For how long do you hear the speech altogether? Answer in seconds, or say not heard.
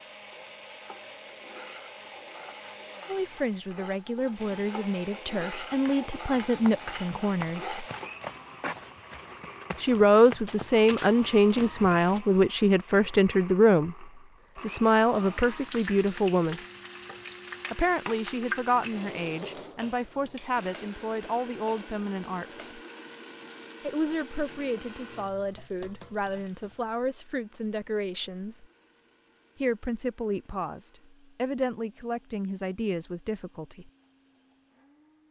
26 s.